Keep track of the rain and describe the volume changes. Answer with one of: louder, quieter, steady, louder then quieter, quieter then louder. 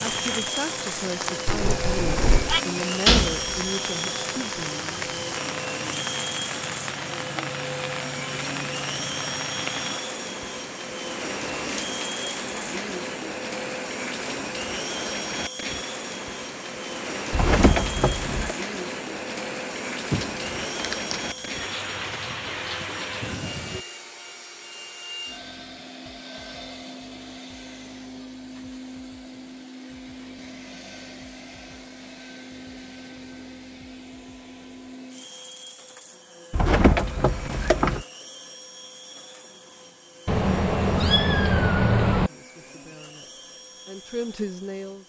steady.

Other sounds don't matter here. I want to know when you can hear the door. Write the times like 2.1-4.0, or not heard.
3.0-3.6, 17.3-18.6, 36.5-38.0.